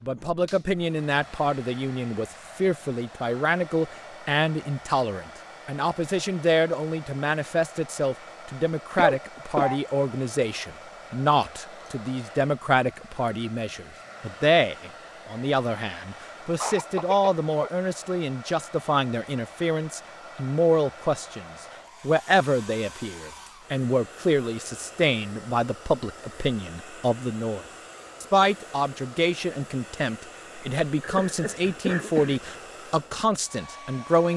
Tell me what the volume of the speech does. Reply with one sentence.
The loudness of the speech stays about the same.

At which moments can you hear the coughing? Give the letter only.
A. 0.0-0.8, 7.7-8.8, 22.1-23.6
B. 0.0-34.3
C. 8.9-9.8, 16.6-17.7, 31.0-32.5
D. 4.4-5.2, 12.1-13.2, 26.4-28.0
C.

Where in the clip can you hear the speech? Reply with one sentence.
You can hear the speech from 0.0 to 34.3 s.